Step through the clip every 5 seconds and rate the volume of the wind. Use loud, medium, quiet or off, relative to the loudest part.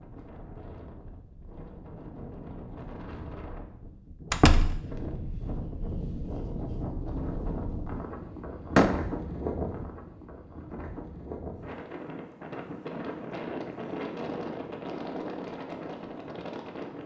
medium, loud, loud, loud.